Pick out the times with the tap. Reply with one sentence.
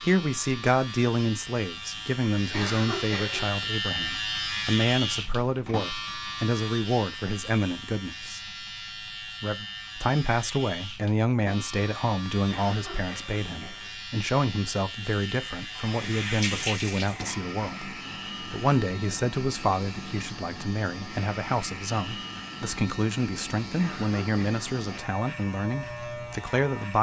You can hear the tap from 15.2 to 17.4 s.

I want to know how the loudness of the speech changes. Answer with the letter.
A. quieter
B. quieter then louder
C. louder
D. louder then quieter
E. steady
E.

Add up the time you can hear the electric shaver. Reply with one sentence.
The electric shaver can be heard for 27 seconds in total.